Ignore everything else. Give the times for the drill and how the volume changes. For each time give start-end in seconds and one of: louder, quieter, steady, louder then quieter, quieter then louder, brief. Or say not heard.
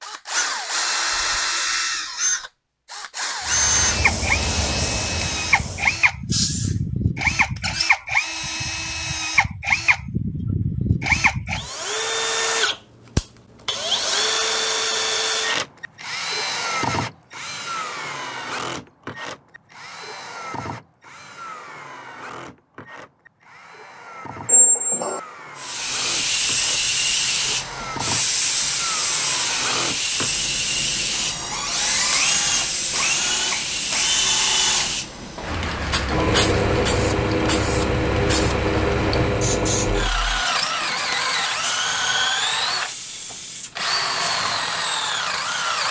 0.0-45.8 quieter then louder.